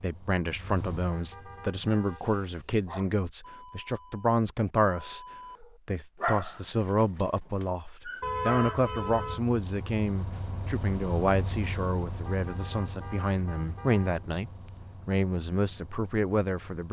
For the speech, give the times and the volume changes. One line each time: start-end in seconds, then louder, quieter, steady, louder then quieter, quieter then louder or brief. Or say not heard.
0.0-16.8 steady.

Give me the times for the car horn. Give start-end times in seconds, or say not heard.
1.1-2.4, 8.2-9.4, 12.2-14.2.